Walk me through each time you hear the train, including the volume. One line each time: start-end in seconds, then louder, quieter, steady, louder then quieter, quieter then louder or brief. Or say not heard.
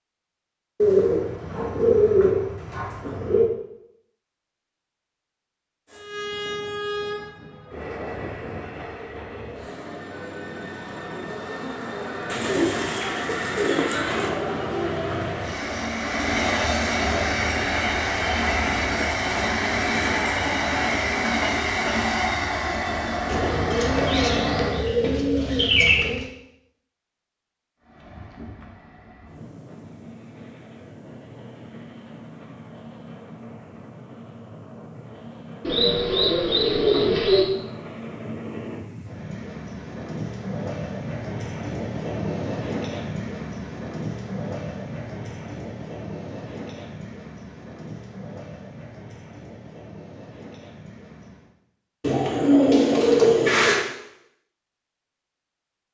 5.9-24.9 louder
27.8-51.5 louder then quieter.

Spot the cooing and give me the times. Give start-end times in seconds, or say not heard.
0.8-3.5, 12.3-14.3, 23.2-26.2, 35.6-37.5, 52.0-53.9.